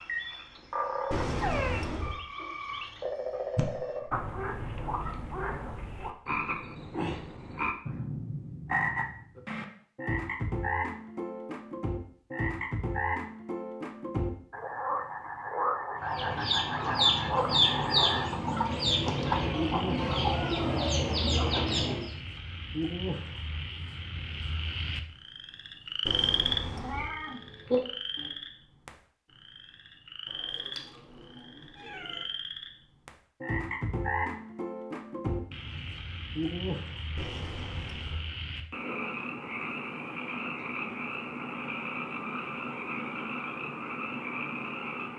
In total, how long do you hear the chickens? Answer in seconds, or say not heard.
6 s.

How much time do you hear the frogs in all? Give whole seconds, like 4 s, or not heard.
45 s.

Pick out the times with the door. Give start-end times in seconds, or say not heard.
1.1-2.1, 26.1-27.1, 37.1-38.2.